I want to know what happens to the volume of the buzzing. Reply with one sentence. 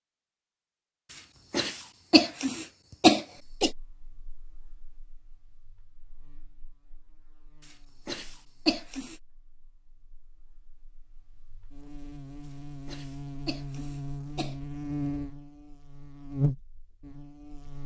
The volume of the buzzing goes up.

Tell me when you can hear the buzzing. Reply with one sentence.
The buzzing can be heard from 3.6 to 17.8 s.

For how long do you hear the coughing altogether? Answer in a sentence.
The coughing can be heard for 6 seconds in total.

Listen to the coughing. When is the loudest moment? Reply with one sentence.
The loudest moment of the coughing is at 3 seconds.